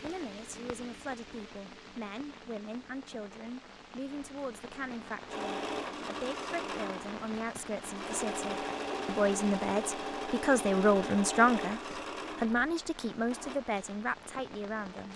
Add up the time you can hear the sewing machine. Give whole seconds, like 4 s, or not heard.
8 s.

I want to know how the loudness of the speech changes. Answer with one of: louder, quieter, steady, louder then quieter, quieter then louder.
louder then quieter.